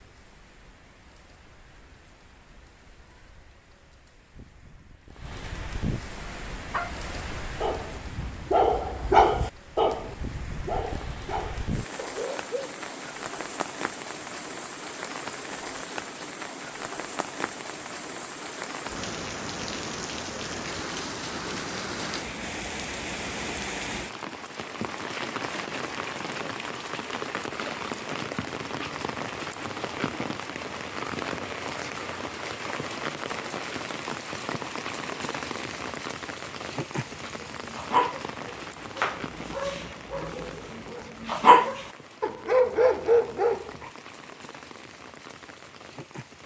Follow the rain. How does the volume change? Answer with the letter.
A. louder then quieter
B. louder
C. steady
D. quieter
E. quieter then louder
A.